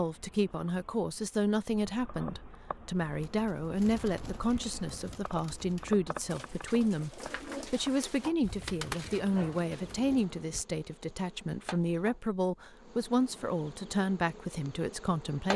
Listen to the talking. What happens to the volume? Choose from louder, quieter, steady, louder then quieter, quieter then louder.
steady.